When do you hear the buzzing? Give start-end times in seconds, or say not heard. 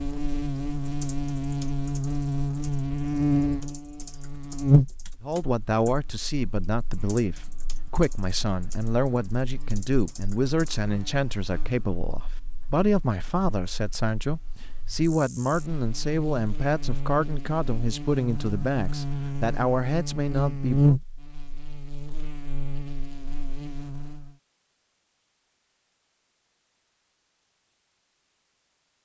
0.0-24.3.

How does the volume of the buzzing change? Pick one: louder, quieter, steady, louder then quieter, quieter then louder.
quieter then louder.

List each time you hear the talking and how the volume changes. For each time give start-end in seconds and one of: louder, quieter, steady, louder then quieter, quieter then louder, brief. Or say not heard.
5.2-20.9 steady.